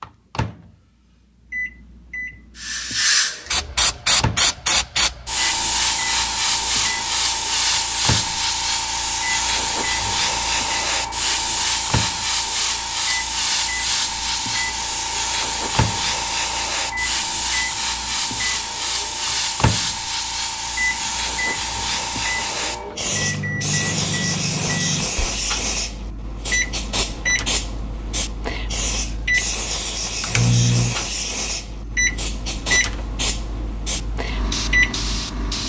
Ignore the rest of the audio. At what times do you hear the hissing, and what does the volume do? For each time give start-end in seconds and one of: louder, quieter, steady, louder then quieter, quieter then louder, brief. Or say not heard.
2.5-35.6 quieter.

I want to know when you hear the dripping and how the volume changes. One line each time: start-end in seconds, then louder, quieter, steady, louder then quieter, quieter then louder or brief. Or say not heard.
not heard.